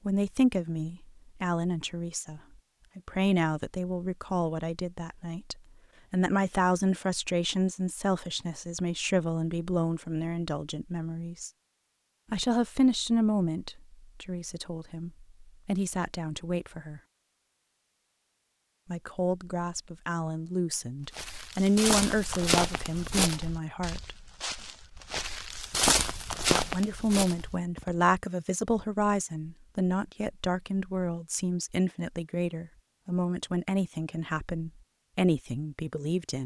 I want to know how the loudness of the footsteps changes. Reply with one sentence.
The volume of the footsteps goes down, then up.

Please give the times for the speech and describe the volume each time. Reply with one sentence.
You can hear the speech from 0.1 to 11.5 s, at a steady volume; from 12.3 to 17.0 s, getting quieter then louder; from 18.9 to 24.1 s, getting louder then quieter; and from 26.4 to 36.4 s, at a steady volume.